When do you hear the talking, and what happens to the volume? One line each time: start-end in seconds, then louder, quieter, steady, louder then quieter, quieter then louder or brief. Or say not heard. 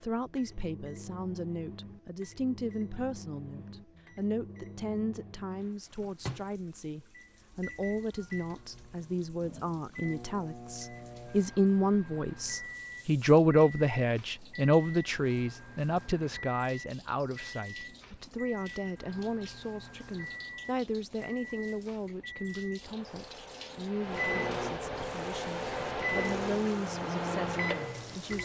0.0-28.3 louder then quieter.